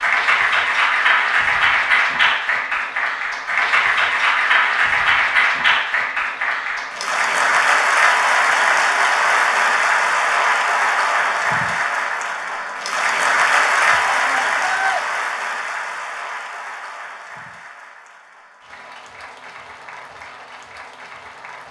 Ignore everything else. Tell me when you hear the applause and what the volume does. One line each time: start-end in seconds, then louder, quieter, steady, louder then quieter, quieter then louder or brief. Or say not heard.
0.0-21.6 quieter.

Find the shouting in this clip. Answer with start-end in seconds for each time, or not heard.
13.8-15.0.